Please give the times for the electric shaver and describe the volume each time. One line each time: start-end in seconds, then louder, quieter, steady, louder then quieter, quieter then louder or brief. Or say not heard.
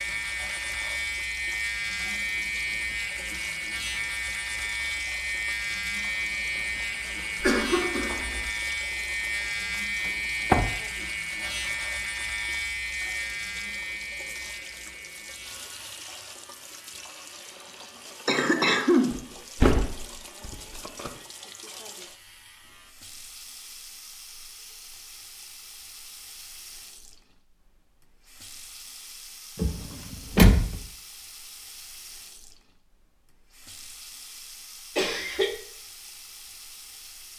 0.0-22.9 quieter.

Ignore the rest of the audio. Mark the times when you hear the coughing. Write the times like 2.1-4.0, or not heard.
7.4-8.5, 18.2-19.1, 35.0-35.5.